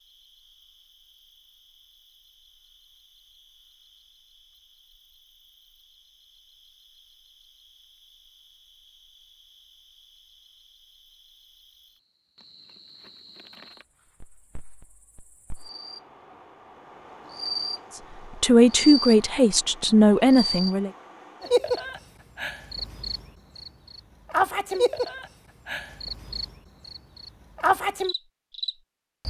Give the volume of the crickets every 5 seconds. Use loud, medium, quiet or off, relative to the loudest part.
quiet, quiet, quiet, medium, loud, loud.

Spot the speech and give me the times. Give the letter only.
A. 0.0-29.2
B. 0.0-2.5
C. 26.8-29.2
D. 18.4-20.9
D.